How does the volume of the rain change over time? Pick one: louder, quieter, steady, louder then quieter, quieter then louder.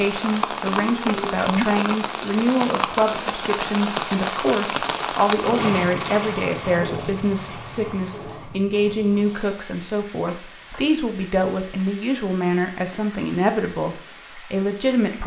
quieter.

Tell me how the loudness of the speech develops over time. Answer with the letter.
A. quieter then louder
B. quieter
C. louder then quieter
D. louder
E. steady
E.